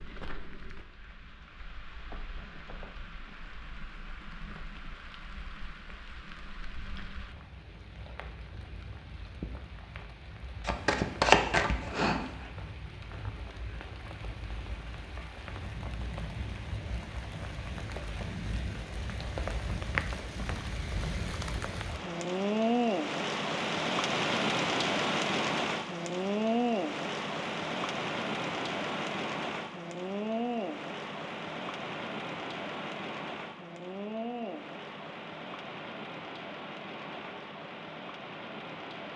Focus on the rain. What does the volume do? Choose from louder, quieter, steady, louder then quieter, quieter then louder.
louder then quieter.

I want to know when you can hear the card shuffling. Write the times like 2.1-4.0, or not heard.
10.6-12.5.